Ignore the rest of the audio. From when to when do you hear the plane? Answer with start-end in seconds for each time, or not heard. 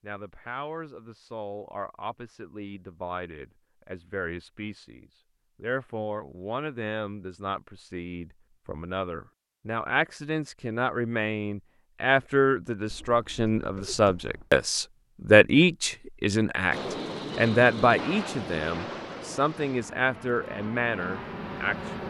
16.7-22.0.